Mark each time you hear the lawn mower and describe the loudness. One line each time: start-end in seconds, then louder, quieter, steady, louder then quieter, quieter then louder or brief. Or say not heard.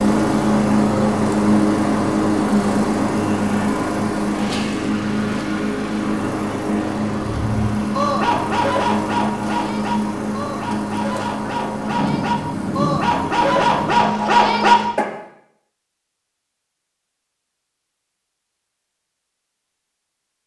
0.0-14.9 quieter.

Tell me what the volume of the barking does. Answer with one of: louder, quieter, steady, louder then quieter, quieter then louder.
quieter then louder.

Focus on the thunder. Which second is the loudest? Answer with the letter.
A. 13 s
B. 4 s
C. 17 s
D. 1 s
A.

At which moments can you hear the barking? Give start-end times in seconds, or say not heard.
7.3-15.2.